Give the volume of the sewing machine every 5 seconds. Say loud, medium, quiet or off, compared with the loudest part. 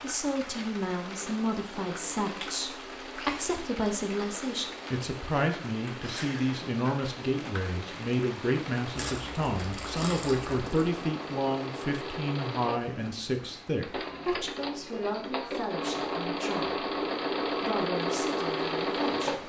quiet, quiet, medium, loud.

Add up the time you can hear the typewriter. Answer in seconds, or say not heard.
not heard.